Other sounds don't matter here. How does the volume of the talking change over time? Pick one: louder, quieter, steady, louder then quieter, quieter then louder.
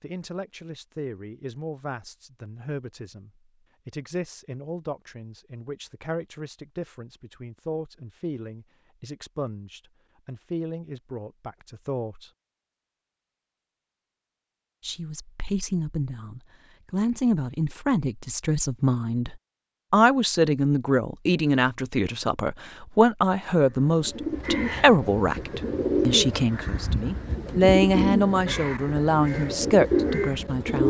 louder.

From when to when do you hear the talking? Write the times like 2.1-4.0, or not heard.
0.0-12.3, 14.8-30.8.